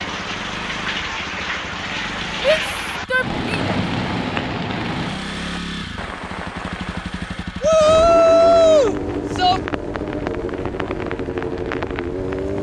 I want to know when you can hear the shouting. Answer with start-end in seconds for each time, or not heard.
2.4-3.8, 7.6-9.6.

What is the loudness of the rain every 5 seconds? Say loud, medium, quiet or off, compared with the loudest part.
loud, medium, medium.